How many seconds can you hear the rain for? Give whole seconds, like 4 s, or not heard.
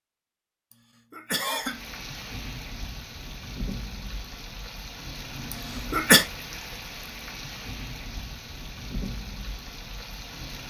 9 s.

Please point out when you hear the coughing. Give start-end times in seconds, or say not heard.
0.7-1.8, 5.5-6.2.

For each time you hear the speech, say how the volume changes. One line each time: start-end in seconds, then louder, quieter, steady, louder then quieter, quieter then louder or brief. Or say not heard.
not heard.